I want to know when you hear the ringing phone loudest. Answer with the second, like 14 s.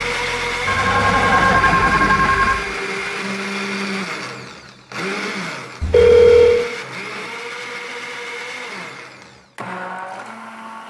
6 s.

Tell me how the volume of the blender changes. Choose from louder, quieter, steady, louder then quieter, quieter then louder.
quieter.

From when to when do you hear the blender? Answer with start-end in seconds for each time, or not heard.
0.0-10.8.